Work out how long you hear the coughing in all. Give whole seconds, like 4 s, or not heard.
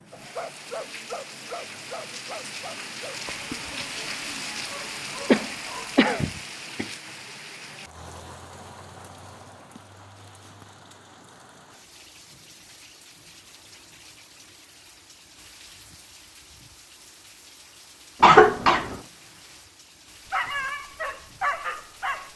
2 s.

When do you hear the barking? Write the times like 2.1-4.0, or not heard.
0.1-6.0, 20.2-22.3.